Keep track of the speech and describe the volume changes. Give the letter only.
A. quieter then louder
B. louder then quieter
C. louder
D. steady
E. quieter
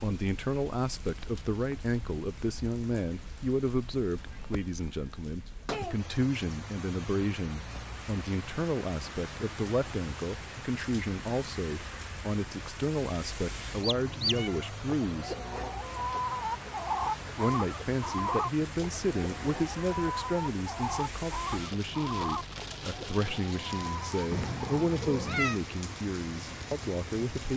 D.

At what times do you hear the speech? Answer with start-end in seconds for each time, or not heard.
0.0-15.3, 17.4-27.5.